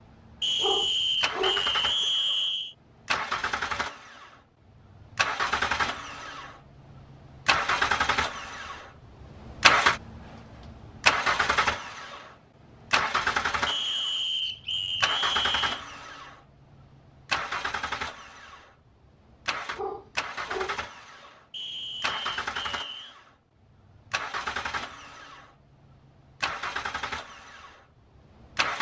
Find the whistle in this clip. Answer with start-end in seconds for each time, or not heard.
0.4-2.8, 13.7-15.8, 21.5-23.1.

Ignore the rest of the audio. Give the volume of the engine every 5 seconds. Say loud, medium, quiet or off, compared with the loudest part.
medium, loud, loud, medium, medium, medium.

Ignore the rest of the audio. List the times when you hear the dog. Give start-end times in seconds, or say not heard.
0.6-2.0, 19.7-20.8.